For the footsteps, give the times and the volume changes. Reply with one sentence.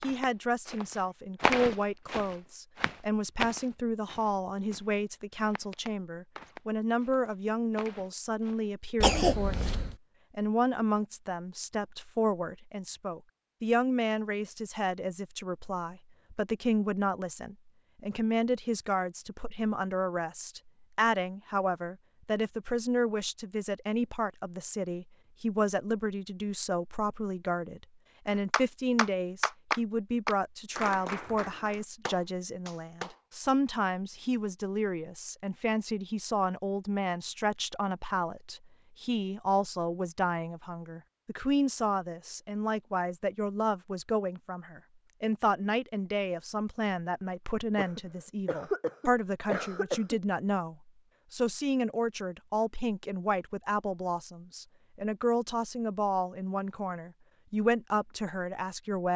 You can hear the footsteps from 0.0 to 8.7 s, getting quieter.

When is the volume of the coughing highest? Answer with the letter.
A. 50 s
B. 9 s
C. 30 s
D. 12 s
B.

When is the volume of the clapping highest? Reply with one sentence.
The loudest moment of the clapping is at 30 seconds.